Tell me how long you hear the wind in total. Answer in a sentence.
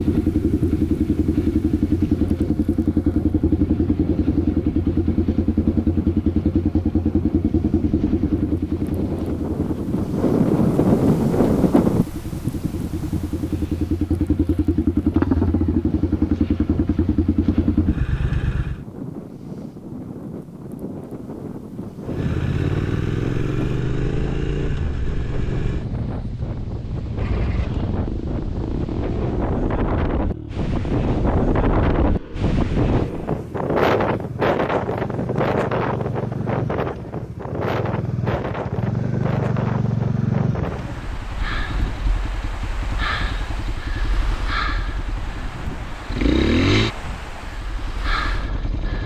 The wind can be heard for 49 seconds in total.